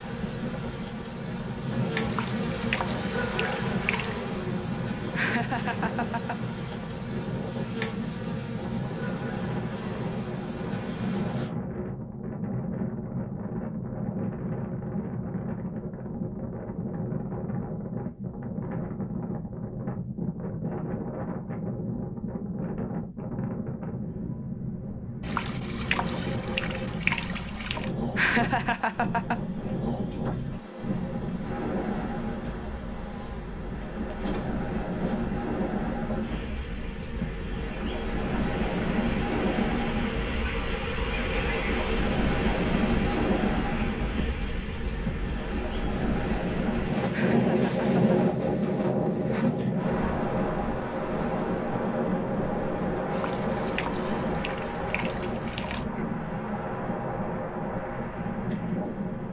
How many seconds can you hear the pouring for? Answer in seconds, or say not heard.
8 s.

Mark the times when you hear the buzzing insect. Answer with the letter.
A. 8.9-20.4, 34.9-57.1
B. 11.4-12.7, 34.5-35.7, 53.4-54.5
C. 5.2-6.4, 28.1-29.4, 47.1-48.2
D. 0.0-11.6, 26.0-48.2
D.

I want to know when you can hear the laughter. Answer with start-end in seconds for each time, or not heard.
5.2-6.4, 28.1-29.4, 47.1-48.2.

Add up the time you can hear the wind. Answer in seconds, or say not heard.
59 s.